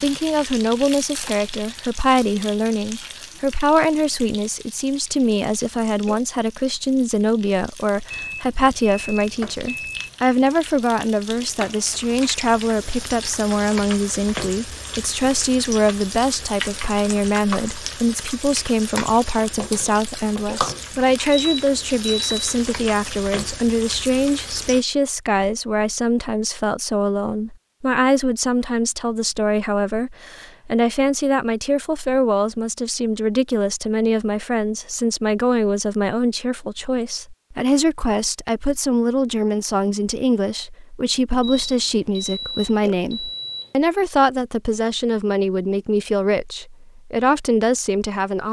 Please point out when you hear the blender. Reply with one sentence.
The blender can't be heard in this clip.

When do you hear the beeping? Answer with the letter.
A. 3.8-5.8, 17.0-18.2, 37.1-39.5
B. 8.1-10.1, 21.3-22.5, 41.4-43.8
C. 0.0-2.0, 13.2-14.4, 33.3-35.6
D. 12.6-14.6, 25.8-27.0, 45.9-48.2
B.